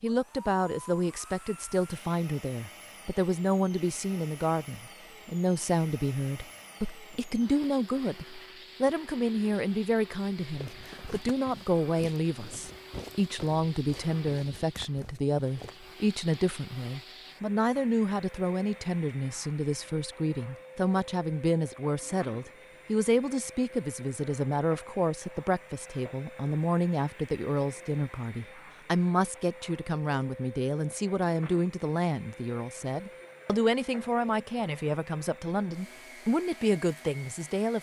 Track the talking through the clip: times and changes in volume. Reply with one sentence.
The talking can be heard from 0.0 to 37.7 s, at a steady volume.